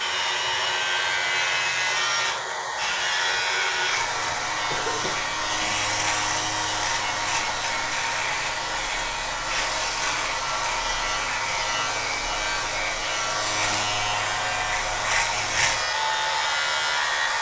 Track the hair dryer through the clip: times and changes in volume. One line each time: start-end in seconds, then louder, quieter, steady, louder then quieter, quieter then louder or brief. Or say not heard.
0.0-17.3 steady.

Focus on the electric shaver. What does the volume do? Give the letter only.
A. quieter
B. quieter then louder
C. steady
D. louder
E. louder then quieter
C.